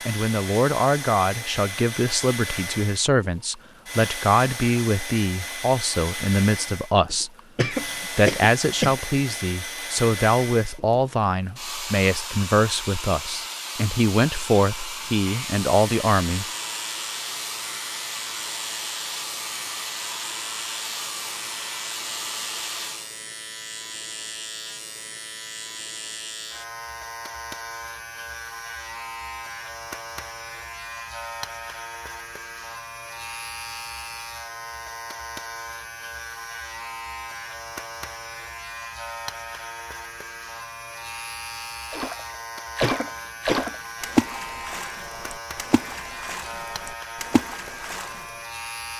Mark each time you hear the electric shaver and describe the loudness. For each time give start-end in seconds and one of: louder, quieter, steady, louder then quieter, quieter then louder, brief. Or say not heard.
15.2-48.9 steady.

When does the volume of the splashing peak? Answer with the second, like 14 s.
44 s.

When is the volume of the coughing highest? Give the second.
8 s.